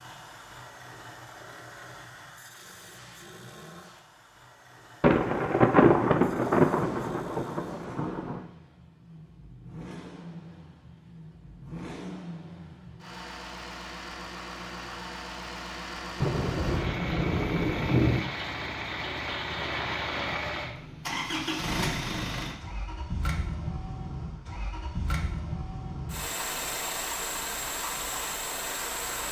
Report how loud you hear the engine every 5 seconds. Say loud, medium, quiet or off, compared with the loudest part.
quiet, quiet, medium, loud, loud, loud.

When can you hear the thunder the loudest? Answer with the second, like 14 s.
6 s.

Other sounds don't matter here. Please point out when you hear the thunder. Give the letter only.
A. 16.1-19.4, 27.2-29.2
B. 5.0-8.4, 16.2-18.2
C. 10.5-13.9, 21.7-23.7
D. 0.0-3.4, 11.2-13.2
B.